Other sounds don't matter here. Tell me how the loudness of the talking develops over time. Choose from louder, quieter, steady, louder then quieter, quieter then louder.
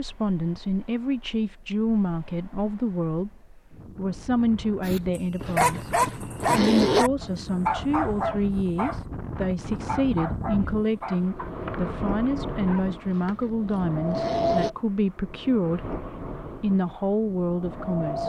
steady.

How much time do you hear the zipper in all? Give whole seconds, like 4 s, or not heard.
3 s.